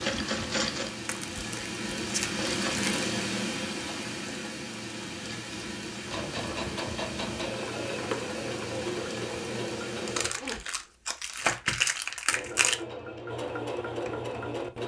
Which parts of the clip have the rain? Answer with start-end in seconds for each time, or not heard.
0.0-10.2.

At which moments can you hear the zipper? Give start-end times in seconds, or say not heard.
10.2-10.8.